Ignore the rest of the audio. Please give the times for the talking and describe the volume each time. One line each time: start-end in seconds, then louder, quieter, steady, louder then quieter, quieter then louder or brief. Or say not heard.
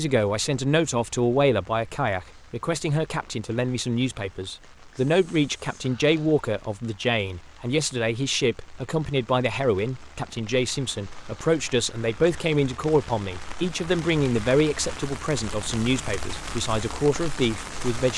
0.0-18.1 steady.